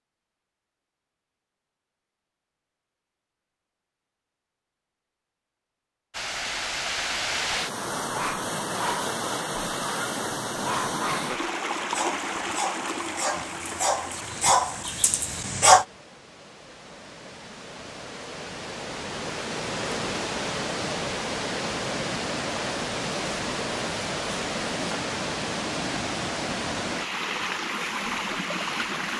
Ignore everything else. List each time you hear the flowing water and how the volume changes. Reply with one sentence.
The flowing water can be heard from 6.1 to 29.1 s, getting quieter then louder.